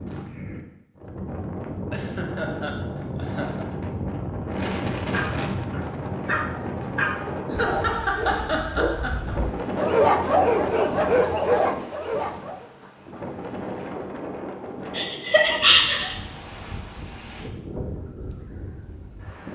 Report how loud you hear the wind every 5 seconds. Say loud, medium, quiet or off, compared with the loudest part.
loud, loud, loud, medium.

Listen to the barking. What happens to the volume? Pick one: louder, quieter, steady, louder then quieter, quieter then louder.
louder.